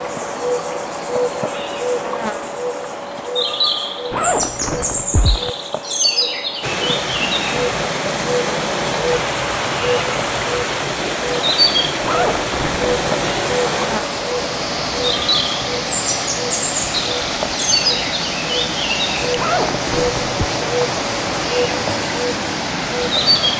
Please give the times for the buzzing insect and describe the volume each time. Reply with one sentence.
You can hear the buzzing insect from 0.0 to 23.5 s, at a steady volume.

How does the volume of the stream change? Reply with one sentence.
The volume of the stream stays about the same.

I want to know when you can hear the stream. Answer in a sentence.
The stream can be heard from 6.6 to 23.5 s.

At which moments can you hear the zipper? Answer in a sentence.
The zipper can be heard from 4.1 to 5.5 s, from 12.0 to 13.1 s and from 19.4 to 20.4 s.